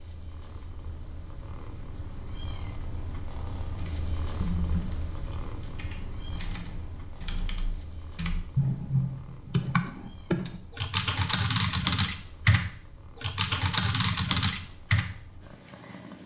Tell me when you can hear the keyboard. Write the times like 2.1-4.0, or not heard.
3.8-15.1.